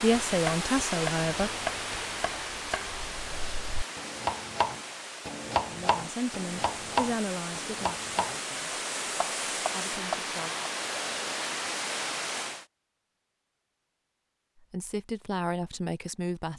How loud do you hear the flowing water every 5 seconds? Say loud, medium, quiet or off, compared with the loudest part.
loud, loud, loud, off.